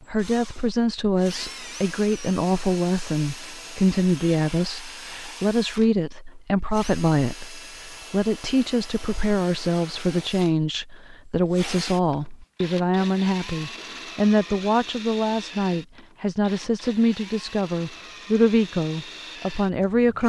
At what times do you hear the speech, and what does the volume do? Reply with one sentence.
The speech can be heard from 0.1 to 20.2 s, at a steady volume.